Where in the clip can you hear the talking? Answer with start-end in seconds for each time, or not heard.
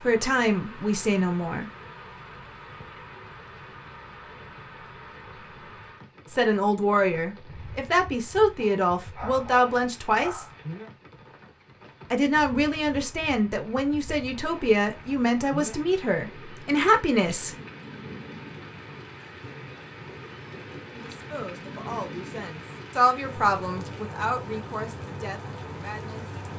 0.0-1.7, 6.3-10.4, 12.1-17.6, 20.9-26.4.